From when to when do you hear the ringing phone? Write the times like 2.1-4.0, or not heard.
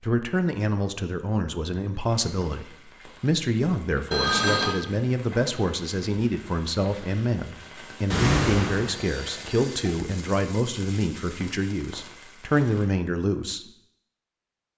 4.1-4.8, 8.1-9.6.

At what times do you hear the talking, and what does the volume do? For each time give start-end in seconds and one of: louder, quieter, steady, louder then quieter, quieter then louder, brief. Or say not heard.
0.0-13.7 steady.